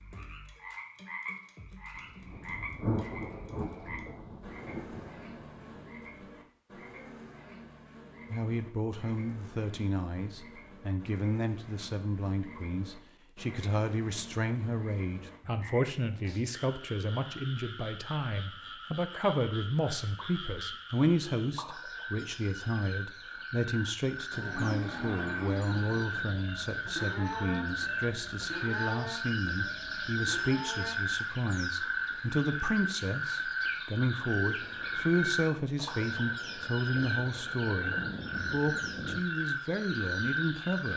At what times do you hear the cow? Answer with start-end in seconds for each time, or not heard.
24.3-30.9.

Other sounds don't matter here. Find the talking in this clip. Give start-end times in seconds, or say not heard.
8.3-40.9.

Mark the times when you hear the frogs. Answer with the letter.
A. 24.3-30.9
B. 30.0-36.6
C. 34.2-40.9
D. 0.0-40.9
D.